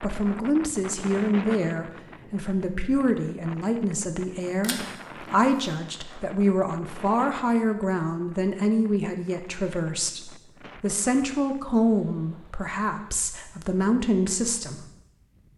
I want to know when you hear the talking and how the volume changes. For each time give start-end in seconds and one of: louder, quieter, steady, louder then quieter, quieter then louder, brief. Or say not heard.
0.0-14.8 steady.